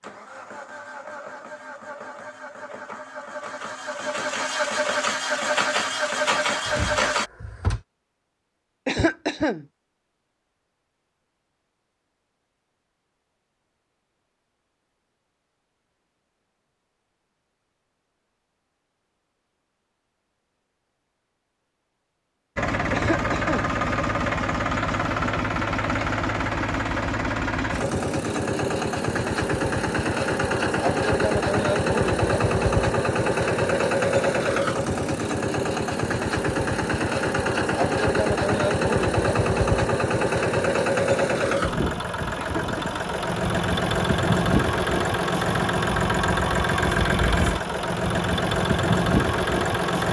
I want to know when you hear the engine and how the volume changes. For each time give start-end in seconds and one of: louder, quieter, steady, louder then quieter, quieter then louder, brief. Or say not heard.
0.0-7.3 louder
22.6-50.0 steady.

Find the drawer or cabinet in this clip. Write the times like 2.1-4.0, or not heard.
6.7-7.8.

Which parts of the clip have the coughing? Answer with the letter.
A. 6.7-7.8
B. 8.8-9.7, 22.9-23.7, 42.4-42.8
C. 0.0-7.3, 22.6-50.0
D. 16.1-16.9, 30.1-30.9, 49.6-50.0
B.